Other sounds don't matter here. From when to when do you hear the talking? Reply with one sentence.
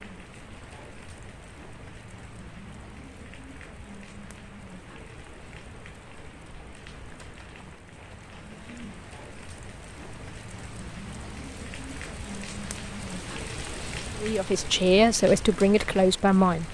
You can hear the talking from 14.2 to 16.6 s.